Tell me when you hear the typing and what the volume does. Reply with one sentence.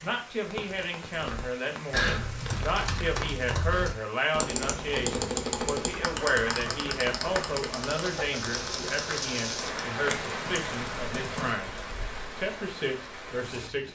The typing can be heard from 1.1 to 11.6 s, getting quieter.